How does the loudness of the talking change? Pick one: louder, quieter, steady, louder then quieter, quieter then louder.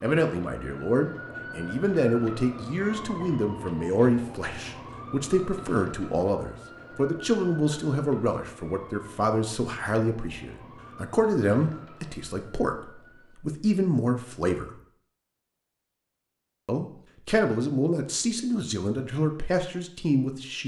steady.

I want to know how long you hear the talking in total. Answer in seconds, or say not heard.
19 s.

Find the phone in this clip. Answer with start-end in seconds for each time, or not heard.
not heard.